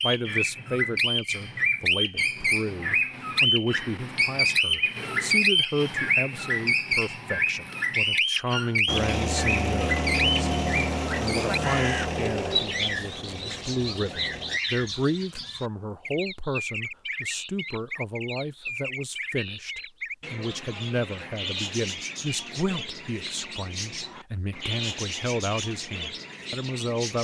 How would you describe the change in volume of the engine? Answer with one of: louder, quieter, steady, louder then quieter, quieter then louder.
quieter.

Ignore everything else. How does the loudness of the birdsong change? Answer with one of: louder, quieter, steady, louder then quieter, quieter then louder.
quieter.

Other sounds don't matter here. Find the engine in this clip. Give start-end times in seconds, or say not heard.
8.8-14.6.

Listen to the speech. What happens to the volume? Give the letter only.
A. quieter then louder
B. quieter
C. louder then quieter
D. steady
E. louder
D.